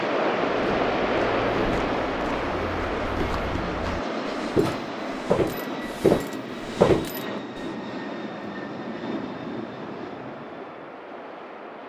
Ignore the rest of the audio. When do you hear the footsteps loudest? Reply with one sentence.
The loudest moment of the footsteps is at 7 seconds.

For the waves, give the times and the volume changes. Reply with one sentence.
You can hear the waves from 0.0 to 11.8 s, getting quieter.